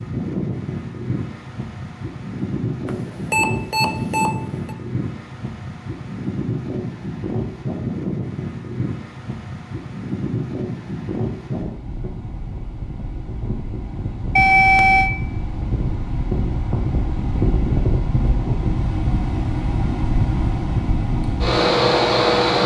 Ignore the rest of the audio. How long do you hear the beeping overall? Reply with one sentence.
The beeping can be heard for 3 seconds in total.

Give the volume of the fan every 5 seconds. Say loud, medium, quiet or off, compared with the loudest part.
medium, medium, medium, medium, loud.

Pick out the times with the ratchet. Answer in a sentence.
The ratchet can't be heard in this clip.